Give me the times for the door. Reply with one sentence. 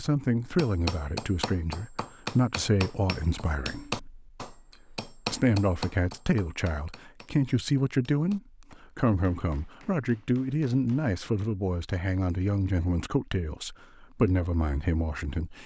The door can't be heard in this clip.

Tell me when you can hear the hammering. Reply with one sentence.
The hammering can be heard from 0.6 to 11.2 s.